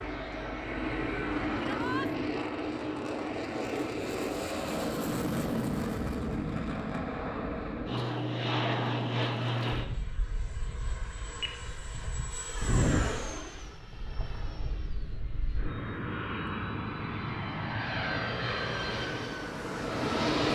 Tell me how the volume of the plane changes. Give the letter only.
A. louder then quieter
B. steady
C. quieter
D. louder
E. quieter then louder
B.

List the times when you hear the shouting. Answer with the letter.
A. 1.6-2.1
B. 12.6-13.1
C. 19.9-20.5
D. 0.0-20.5
A.